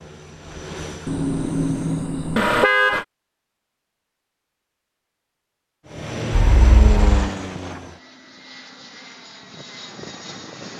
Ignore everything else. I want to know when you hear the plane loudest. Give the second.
7 s.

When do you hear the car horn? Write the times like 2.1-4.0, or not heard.
1.1-3.0, 6.3-7.3.